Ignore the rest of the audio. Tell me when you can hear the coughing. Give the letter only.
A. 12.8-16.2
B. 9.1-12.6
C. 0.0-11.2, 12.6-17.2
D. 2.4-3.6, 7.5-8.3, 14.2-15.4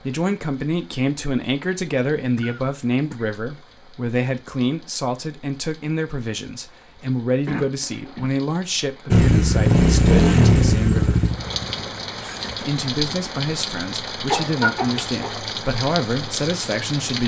D.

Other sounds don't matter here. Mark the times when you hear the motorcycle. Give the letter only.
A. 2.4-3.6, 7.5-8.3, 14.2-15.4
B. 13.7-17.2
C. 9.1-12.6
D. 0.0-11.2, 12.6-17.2
C.